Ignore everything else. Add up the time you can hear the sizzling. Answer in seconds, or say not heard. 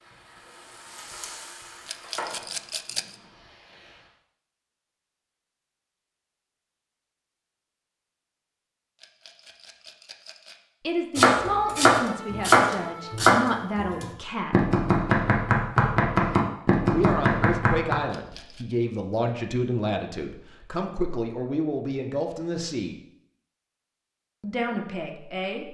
4 s.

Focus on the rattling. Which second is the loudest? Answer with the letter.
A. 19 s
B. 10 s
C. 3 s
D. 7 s
C.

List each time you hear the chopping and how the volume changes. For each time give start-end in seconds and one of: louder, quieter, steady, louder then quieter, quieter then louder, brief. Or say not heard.
11.2-17.9 steady.